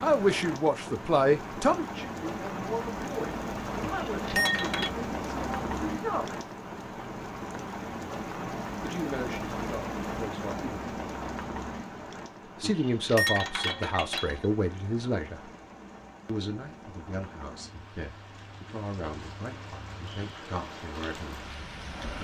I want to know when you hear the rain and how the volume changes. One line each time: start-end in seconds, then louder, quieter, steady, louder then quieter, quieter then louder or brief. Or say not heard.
0.0-22.2 quieter.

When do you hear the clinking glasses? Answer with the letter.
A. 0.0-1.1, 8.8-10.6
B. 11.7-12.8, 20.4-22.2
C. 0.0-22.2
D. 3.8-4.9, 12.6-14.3
D.